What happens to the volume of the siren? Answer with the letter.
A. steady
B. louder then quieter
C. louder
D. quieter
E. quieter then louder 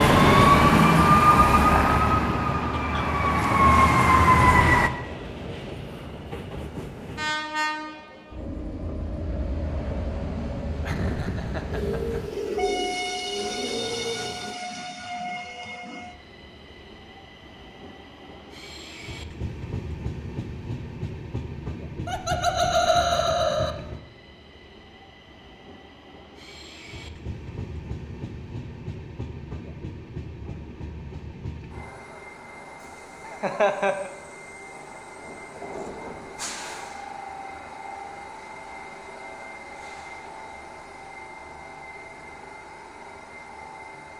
E.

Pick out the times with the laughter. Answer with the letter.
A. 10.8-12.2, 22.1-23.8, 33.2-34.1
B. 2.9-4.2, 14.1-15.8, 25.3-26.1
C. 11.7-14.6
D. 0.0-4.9
A.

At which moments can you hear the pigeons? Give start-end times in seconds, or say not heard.
11.7-14.6.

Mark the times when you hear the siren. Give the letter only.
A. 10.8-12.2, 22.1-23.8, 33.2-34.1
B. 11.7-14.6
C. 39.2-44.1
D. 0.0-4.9
D.